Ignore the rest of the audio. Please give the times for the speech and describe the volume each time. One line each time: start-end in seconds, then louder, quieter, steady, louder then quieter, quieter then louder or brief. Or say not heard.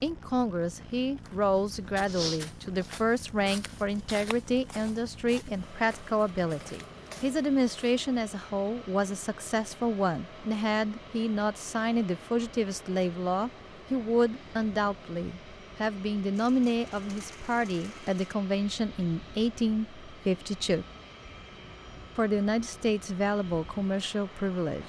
0.0-20.9 steady
22.1-24.8 brief.